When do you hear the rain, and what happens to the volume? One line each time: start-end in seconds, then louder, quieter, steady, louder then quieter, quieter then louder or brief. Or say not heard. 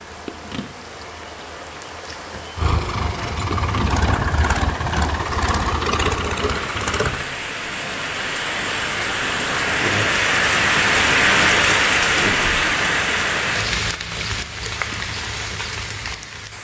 0.0-16.5 louder then quieter.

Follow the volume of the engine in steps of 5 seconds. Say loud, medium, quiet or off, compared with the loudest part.
loud, loud, off, off.